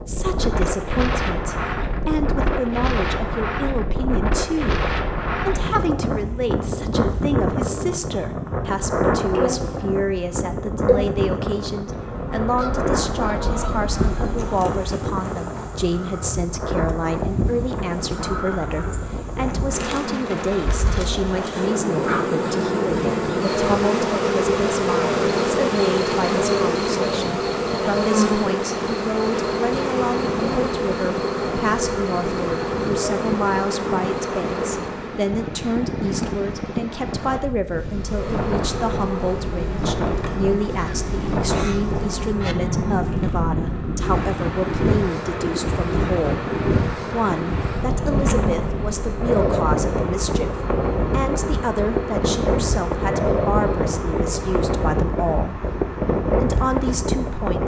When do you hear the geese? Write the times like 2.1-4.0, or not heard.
12.6-14.6, 40.6-42.5.